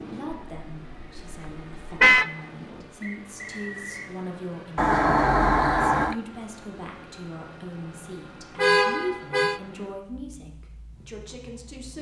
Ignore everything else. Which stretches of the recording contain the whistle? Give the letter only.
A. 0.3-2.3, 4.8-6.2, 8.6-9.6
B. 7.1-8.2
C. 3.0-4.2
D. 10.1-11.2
C.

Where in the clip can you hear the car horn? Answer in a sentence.
The car horn can be heard from 0.3 to 2.3 s, from 4.8 to 6.2 s and from 8.6 to 9.6 s.